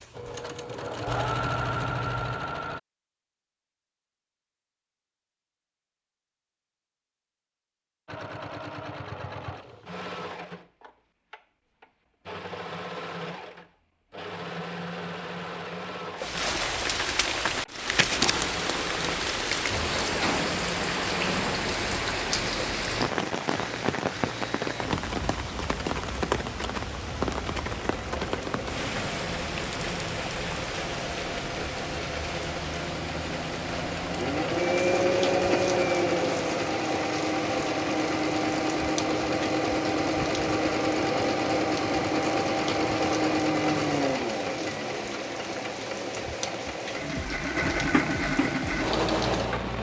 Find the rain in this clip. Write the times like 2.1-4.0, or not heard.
16.1-49.7.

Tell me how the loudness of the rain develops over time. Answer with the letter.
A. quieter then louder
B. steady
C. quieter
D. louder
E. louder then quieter
C.